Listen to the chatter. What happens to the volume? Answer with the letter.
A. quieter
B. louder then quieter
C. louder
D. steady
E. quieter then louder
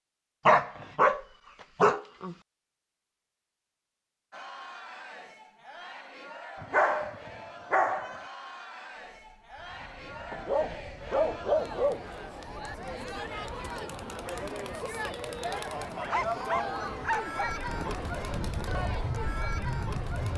C.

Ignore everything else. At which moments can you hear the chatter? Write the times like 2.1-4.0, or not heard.
4.3-20.3.